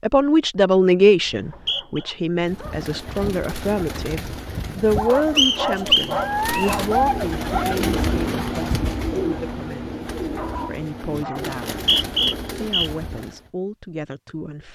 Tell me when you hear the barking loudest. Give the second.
7 s.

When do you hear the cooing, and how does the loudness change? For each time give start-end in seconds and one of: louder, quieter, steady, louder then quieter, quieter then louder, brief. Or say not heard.
2.4-13.5 louder then quieter.